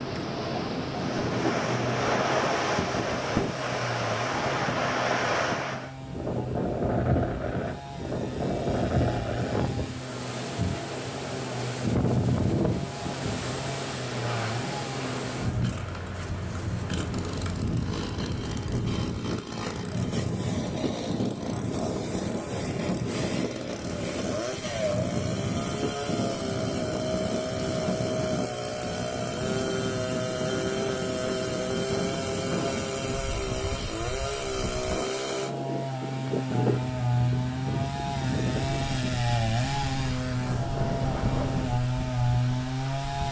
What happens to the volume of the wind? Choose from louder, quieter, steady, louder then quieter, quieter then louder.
quieter.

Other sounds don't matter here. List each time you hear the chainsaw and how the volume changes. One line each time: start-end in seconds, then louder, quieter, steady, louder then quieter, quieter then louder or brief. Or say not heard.
0.0-43.2 louder.